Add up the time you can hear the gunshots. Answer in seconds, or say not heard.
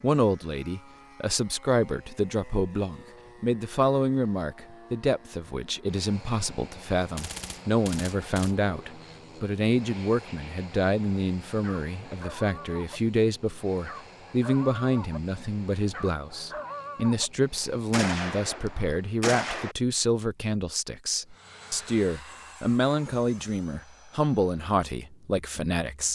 3 s.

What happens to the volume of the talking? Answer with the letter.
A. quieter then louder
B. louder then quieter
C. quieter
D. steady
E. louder
D.